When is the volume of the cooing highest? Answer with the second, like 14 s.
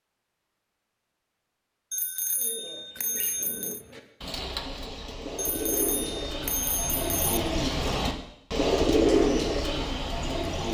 9 s.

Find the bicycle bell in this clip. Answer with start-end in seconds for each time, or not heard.
1.9-3.8, 5.3-7.2.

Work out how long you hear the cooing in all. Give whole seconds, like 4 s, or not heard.
8 s.